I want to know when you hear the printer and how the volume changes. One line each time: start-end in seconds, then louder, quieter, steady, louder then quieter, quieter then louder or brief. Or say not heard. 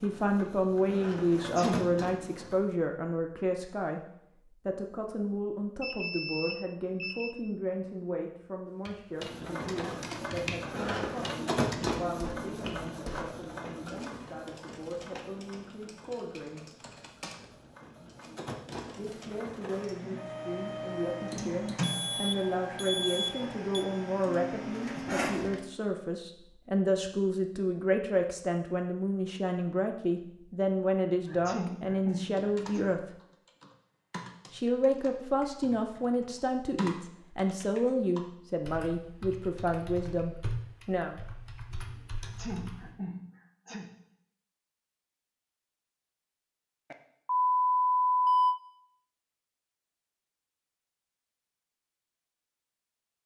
0.0-2.8 brief
9.2-25.6 quieter then louder.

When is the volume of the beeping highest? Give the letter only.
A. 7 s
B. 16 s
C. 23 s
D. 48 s
D.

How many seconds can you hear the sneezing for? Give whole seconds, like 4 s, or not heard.
4 s.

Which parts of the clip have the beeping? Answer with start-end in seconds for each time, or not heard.
5.8-7.3, 21.8-23.9, 46.9-48.5.